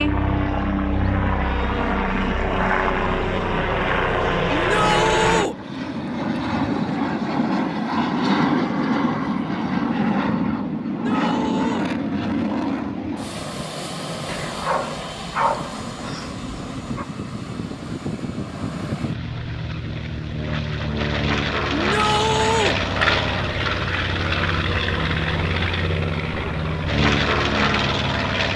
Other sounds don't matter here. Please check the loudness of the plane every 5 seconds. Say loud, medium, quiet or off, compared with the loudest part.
loud, loud, loud, medium, loud, loud.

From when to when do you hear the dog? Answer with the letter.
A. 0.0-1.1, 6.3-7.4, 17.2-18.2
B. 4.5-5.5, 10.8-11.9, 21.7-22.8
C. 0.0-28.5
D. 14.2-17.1
D.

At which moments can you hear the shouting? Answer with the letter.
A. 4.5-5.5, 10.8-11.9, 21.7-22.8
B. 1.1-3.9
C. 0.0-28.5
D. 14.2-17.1
A.